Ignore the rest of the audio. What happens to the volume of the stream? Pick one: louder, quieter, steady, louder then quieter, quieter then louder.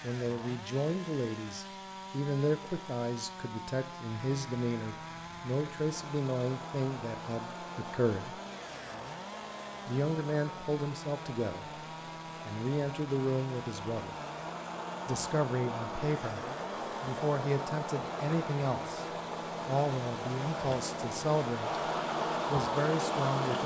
louder.